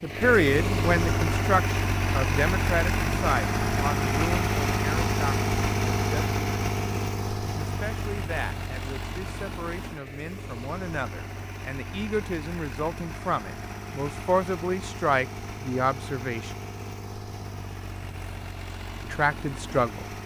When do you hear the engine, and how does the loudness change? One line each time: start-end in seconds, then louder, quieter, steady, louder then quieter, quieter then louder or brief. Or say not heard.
0.0-20.2 quieter.